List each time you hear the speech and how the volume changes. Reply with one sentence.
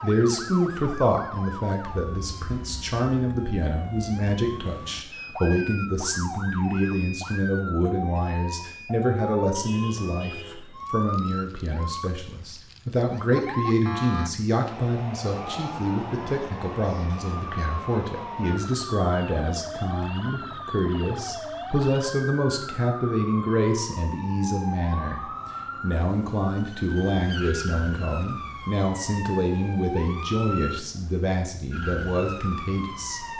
You can hear the speech from 0.0 to 33.2 s, at a steady volume.